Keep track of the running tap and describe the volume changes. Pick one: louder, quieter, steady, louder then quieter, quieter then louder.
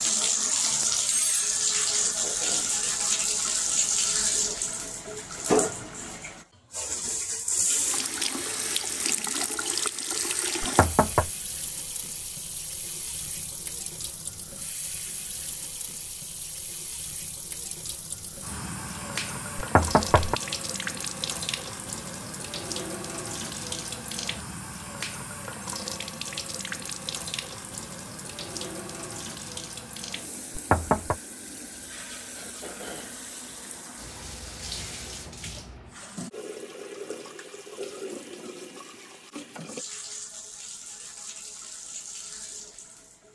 quieter.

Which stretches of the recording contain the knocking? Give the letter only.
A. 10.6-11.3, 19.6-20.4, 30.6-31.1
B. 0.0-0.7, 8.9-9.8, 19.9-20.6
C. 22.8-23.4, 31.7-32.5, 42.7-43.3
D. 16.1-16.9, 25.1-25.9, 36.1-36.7
A.